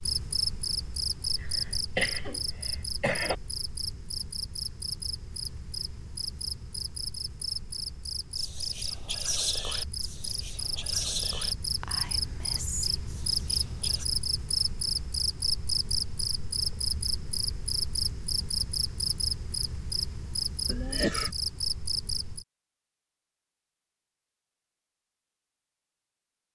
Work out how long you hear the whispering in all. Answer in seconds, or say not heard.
6 s.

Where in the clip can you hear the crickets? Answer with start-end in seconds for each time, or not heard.
0.0-22.4.